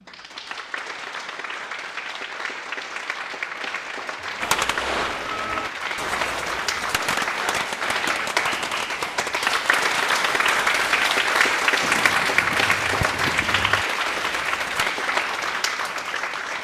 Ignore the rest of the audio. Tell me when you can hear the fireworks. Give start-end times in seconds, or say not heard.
4.4-14.9.